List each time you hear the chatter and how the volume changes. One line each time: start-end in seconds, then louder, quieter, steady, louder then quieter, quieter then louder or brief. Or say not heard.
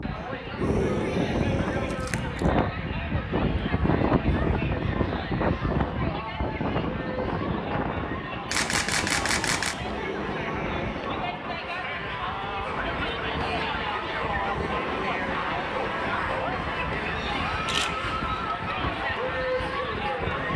0.0-20.5 louder.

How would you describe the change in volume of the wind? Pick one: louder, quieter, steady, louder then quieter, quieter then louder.
quieter.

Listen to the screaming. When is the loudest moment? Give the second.
1 s.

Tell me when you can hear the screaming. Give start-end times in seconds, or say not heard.
0.6-2.0, 9.8-11.2, 14.3-15.9.